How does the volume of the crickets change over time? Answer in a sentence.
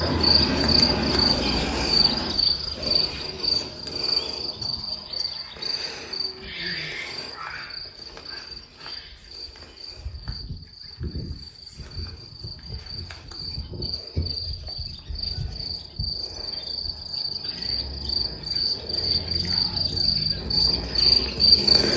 The loudness of the crickets goes down, then up.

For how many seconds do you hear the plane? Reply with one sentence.
The plane can be heard for 2 seconds in total.